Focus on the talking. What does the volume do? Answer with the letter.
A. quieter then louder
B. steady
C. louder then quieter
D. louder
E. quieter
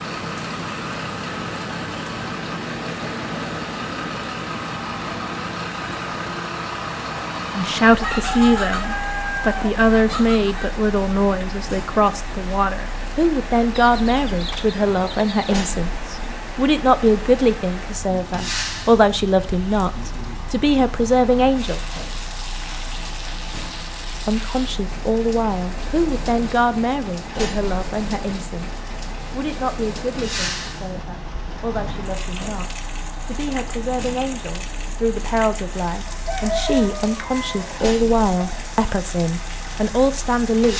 A.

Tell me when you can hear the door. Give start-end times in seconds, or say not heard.
not heard.